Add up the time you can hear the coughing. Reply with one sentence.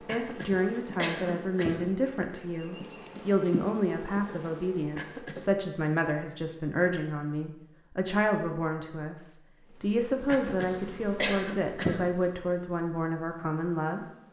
The coughing can be heard for 4 seconds in total.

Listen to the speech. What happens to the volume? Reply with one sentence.
The loudness of the speech stays about the same.